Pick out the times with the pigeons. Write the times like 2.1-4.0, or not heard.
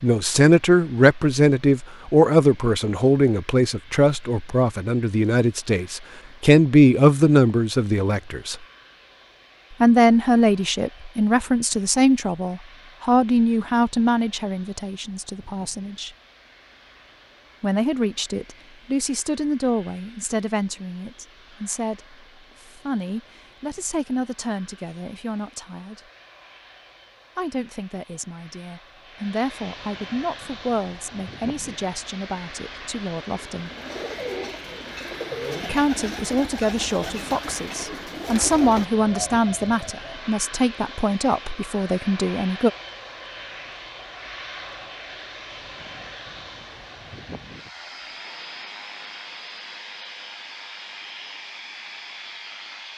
33.5-40.3.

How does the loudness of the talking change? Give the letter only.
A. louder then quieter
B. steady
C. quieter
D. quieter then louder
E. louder
D.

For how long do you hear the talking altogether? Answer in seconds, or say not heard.
37 s.